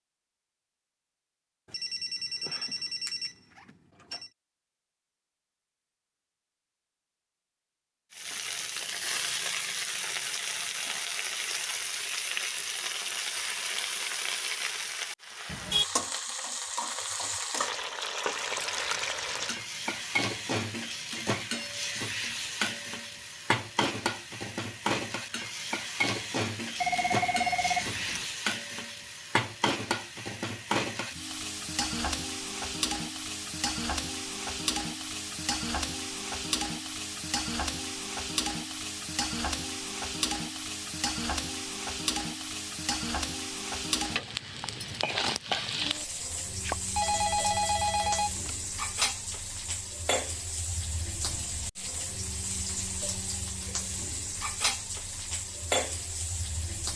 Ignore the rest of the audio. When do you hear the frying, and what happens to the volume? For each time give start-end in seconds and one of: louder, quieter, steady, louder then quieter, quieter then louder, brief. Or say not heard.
8.1-56.9 steady.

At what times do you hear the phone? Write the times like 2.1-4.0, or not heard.
1.7-4.3, 26.8-28.2, 46.6-48.5.